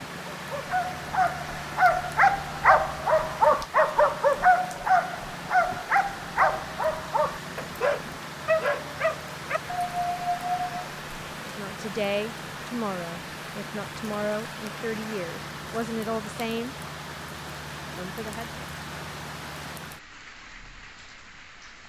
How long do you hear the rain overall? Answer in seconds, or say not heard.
22 s.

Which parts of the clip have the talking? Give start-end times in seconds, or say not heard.
11.4-16.8, 17.9-18.6.